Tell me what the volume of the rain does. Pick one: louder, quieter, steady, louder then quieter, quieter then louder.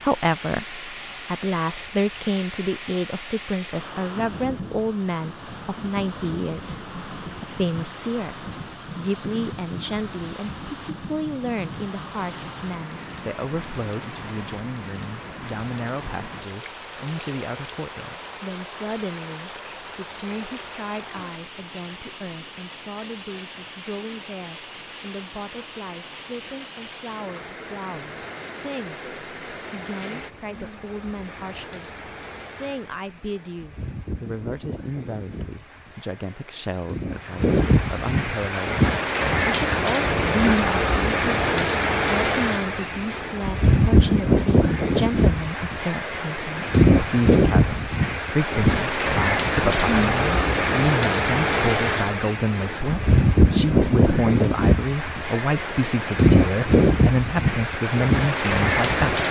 louder.